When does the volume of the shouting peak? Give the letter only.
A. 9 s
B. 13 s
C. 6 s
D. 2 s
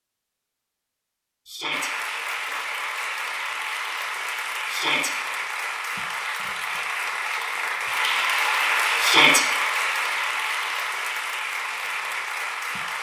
A.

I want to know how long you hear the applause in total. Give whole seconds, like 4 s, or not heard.
11 s.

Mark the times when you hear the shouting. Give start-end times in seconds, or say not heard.
1.4-1.9, 4.7-5.1, 9.0-9.4.